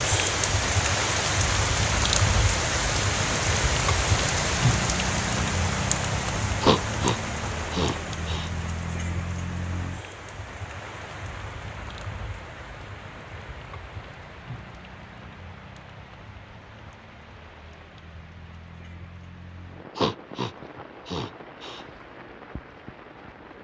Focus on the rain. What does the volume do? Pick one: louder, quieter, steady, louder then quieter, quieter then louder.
quieter.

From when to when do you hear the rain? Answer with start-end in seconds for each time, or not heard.
0.0-23.6.